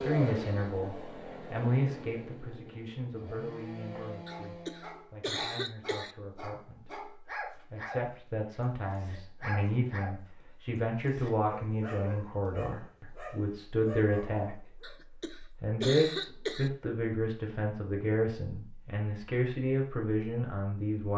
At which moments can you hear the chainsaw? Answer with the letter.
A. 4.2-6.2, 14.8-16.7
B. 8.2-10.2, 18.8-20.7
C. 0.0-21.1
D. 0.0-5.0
D.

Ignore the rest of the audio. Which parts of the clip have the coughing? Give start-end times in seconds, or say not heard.
4.2-6.2, 14.8-16.7.